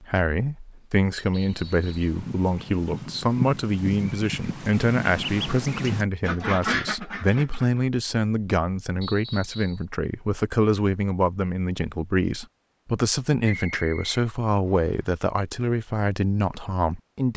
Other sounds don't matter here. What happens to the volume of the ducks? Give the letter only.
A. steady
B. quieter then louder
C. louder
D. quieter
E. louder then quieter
C.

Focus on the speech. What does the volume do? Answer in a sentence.
The volume of the speech stays about the same.